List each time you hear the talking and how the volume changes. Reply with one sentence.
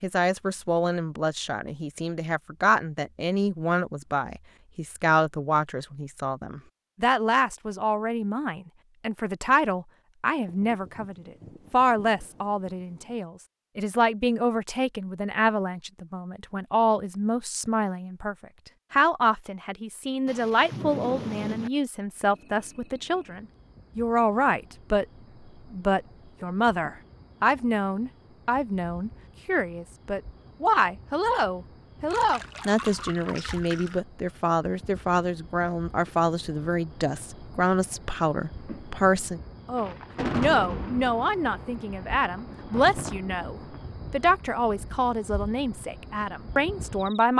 You can hear the talking from 0.0 to 25.1 s, at a steady volume; and from 25.7 to 47.3 s, at a steady volume.